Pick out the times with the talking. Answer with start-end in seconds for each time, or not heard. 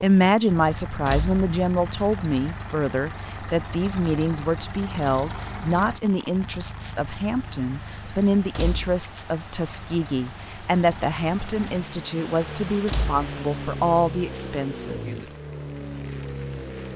0.0-15.2.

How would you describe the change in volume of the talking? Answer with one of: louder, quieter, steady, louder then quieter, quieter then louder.
steady.